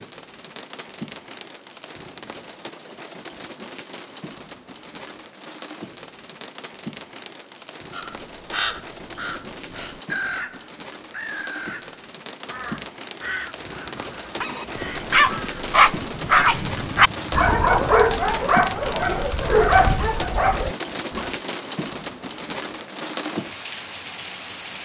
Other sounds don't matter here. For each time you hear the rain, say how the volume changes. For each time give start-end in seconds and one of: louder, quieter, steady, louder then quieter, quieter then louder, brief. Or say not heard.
0.0-24.8 louder.